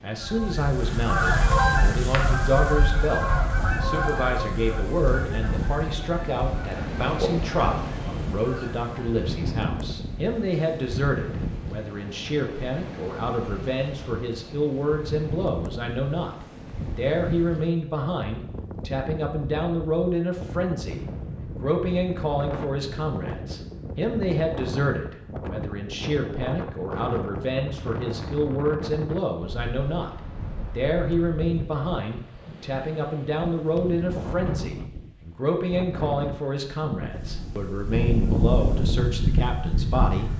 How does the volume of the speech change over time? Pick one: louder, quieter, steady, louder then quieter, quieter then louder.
steady.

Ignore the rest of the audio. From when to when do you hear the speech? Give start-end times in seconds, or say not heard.
0.0-40.3.